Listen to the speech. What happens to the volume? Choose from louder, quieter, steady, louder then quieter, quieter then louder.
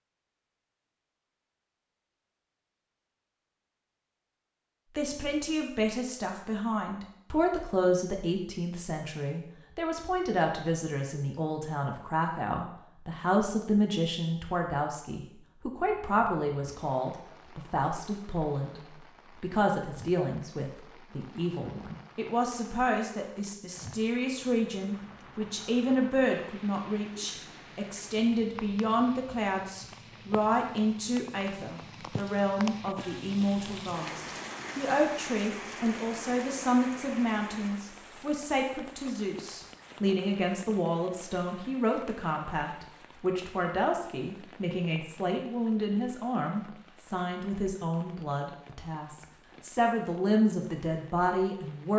steady.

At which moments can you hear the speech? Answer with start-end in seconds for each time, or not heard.
5.0-18.8, 19.4-51.9.